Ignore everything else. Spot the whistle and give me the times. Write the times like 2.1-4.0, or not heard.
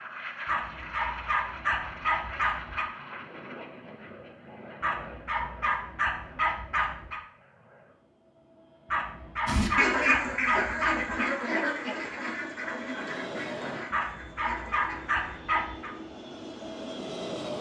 not heard.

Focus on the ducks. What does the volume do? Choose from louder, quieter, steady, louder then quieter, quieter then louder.
quieter.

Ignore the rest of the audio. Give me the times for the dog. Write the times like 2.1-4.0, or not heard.
0.5-2.9, 4.8-7.2, 8.9-11.3, 13.9-15.9.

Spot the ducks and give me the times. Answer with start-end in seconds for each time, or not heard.
9.4-15.4.